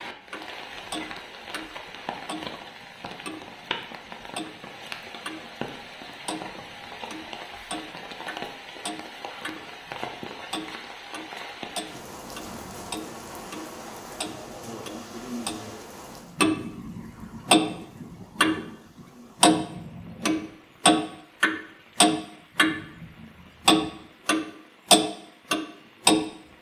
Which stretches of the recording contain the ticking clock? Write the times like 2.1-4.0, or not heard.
0.3-5.5, 6.2-9.9, 10.5-18.7, 19.4-23.1, 23.6-26.2.